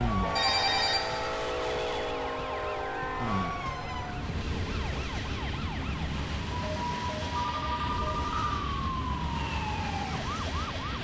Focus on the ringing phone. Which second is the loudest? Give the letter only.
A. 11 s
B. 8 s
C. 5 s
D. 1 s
D.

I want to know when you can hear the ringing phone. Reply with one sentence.
The ringing phone can be heard from 0.3 to 1.3 s and from 7.5 to 8.5 s.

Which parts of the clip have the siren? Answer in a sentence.
The siren can be heard from 0.0 to 10.9 s.